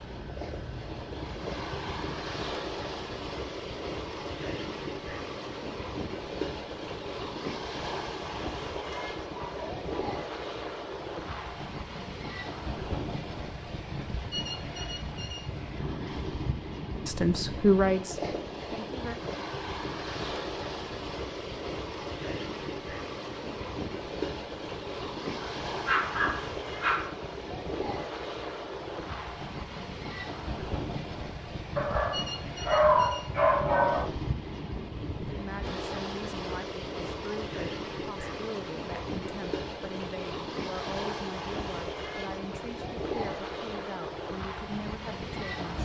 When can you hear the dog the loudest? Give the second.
33 s.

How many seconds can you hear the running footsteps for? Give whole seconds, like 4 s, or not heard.
not heard.